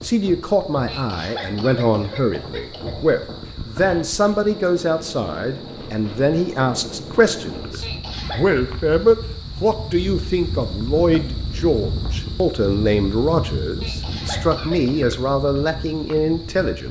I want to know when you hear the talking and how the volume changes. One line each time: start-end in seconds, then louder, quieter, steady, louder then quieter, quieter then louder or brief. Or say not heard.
0.0-16.8 steady.